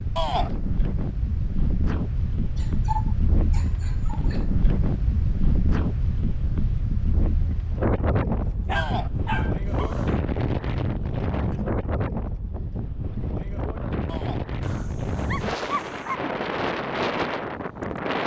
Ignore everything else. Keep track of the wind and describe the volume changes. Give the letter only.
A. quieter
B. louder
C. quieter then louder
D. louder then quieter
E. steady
E.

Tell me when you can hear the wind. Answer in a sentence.
The wind can be heard from 0.0 to 18.2 s.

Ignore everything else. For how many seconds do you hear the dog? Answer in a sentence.
You can hear the dog for 5 seconds altogether.